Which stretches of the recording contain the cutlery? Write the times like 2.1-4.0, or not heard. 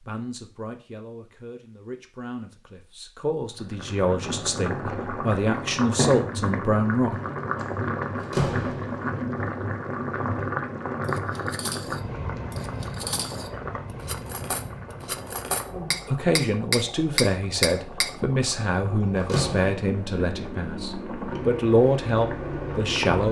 11.0-18.1.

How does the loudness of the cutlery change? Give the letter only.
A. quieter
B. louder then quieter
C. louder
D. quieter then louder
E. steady
C.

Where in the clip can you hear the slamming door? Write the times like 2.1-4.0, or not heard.
7.5-9.1, 18.6-19.9.